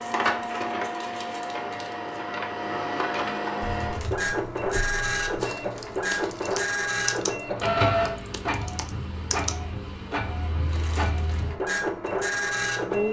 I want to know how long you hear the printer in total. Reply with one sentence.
The printer can be heard for 13 seconds in total.